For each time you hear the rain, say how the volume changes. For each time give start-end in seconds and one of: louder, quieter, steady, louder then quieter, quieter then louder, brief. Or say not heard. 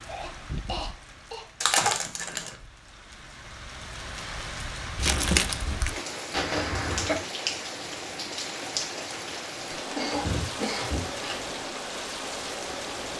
0.0-13.1 louder.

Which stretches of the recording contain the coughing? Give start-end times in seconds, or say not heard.
0.1-2.0, 6.3-7.2, 9.9-11.1.